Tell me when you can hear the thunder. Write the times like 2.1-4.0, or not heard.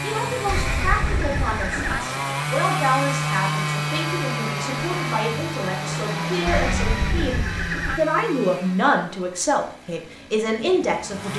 not heard.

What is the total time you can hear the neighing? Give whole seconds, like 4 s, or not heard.
3 s.